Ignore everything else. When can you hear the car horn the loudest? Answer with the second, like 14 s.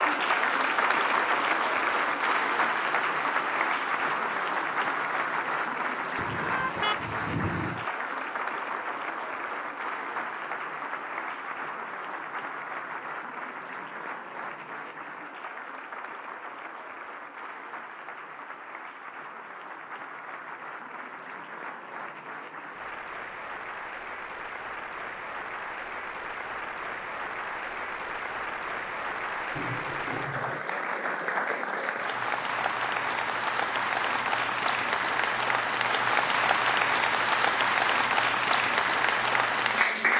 7 s.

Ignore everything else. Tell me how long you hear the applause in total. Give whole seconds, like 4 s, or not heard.
40 s.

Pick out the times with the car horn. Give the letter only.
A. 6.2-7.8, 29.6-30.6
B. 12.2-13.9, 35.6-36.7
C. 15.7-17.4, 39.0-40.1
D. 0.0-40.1
A.